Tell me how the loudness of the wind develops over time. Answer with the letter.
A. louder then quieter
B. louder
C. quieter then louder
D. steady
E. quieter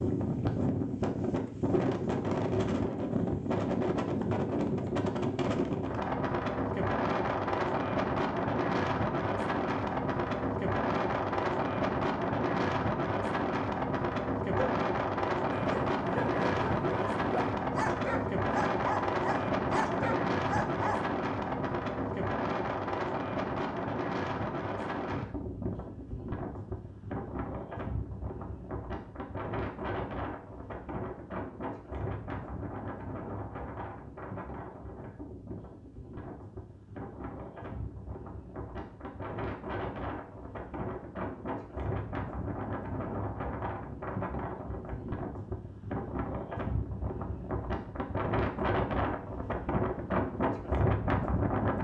C.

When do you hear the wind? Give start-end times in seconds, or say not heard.
0.0-51.8.